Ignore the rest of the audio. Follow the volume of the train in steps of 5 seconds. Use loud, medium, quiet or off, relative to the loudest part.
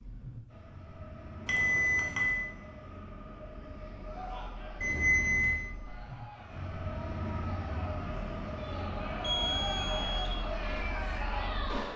medium, loud, loud.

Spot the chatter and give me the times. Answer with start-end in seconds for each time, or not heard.
4.0-11.9.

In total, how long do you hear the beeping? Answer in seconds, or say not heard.
3 s.